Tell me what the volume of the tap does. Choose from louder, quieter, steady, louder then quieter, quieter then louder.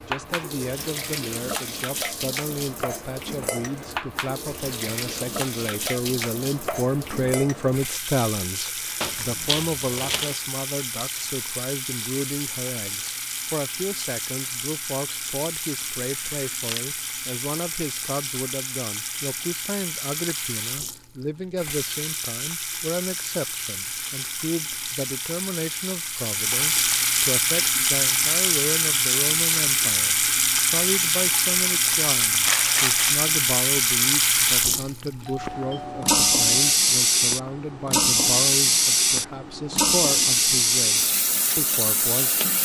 louder.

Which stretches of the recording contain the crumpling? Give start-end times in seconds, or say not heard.
9.0-10.3, 15.9-16.9, 32.4-33.1.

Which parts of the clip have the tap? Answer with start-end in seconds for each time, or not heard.
0.0-42.6.